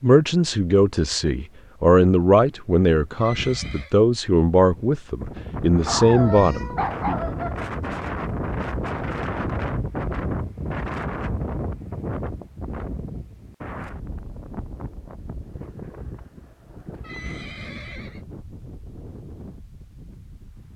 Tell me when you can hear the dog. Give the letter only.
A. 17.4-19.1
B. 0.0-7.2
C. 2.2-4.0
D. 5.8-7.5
D.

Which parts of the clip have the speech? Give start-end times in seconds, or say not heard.
0.0-7.2.